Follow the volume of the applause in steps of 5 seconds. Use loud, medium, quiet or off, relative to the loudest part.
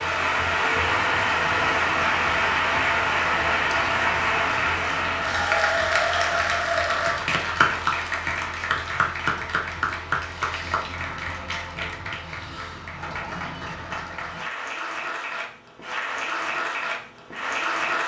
loud, loud, medium, medium.